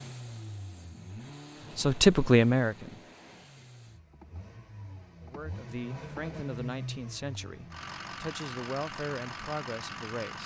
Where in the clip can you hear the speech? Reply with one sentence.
The speech can be heard from 1.8 to 3.0 s and from 5.2 to 10.4 s.